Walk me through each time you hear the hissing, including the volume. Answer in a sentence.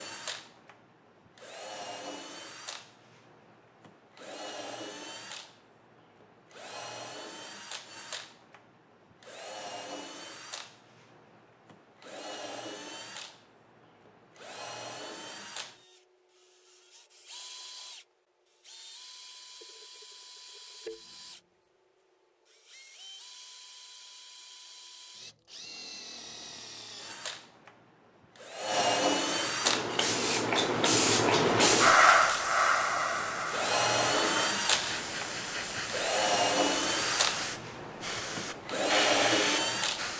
The hissing can be heard from 29.6 to 40.1 s, getting quieter.